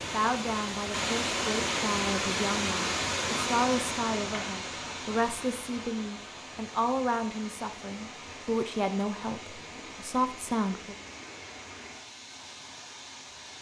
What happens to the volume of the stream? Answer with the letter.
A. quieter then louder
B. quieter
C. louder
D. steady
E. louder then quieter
B.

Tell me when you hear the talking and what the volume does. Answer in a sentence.
You can hear the talking from 0.1 to 10.9 s, at a steady volume.